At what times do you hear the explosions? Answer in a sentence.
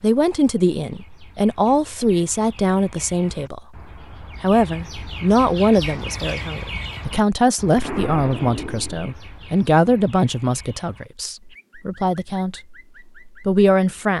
The explosions can be heard from 7.8 to 9.1 s.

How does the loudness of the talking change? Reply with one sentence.
The volume of the talking stays about the same.